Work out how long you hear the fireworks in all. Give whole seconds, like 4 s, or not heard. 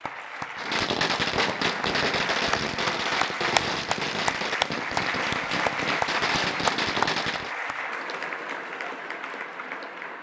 7 s.